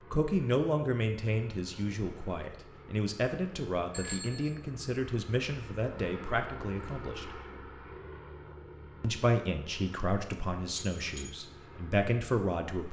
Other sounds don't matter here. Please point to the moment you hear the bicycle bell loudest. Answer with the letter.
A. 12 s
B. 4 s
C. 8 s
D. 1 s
B.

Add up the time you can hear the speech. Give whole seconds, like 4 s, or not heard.
11 s.